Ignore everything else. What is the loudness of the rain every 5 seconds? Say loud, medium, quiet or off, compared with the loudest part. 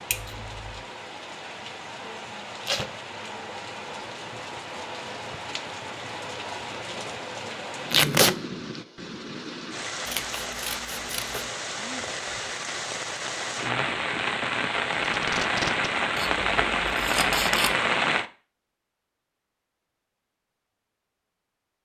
quiet, medium, medium, loud, off.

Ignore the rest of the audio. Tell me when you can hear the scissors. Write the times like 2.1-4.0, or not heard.
0.1-0.8, 10.1-11.5, 16.1-17.8.